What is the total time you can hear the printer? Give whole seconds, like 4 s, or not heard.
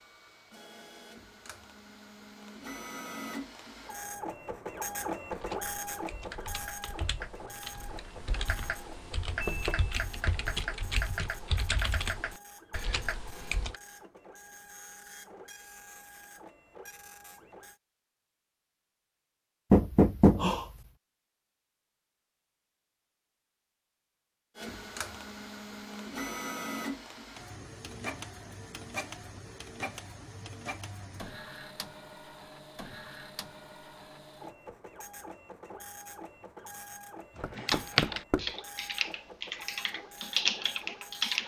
35 s.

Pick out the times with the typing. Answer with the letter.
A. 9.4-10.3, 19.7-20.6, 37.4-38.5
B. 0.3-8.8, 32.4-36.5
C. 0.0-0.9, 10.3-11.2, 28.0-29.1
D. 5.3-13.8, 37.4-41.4
D.